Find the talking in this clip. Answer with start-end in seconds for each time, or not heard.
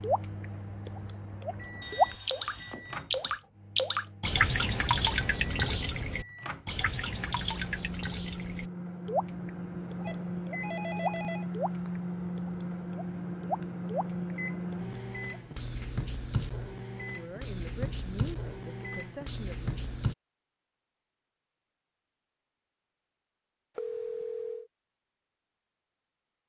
17.0-19.7.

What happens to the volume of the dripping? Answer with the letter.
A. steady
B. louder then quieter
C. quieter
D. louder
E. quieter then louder
C.